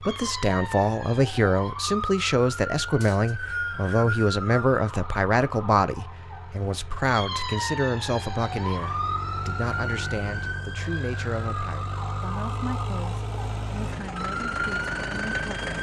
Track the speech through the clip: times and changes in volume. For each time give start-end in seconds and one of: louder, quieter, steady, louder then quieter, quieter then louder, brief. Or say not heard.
0.0-15.7 quieter.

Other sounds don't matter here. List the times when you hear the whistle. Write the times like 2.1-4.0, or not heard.
3.0-4.7.